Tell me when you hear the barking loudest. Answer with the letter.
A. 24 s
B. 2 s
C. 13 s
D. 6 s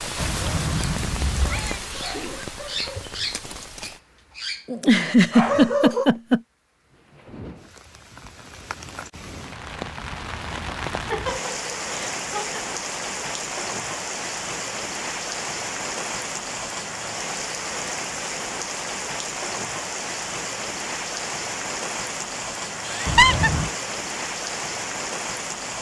D.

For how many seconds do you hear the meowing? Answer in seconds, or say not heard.
2 s.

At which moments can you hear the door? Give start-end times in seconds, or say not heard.
not heard.